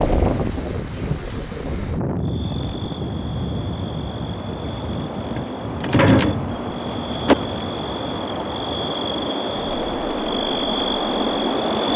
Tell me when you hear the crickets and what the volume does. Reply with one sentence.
The crickets can be heard from 2.1 to 11.9 s, getting louder.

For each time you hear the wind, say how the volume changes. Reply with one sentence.
You can hear the wind from 0.0 to 11.8 s, getting quieter.